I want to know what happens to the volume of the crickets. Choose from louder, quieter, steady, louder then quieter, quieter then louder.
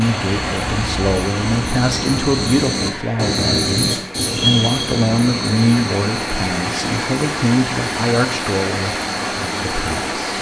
louder then quieter.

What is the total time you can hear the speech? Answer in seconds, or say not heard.
10 s.